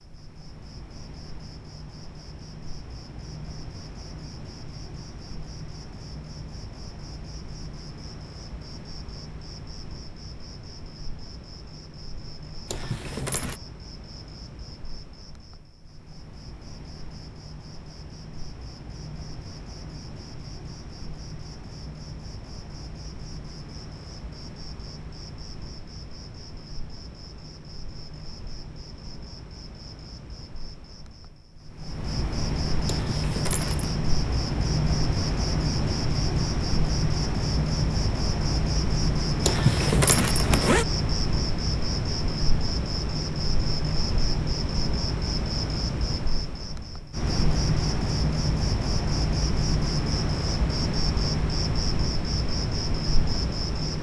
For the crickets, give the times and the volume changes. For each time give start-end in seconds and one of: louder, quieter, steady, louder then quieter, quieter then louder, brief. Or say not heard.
0.0-53.9 louder.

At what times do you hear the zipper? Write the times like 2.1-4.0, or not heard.
12.7-13.6, 32.9-34.0, 39.4-40.9.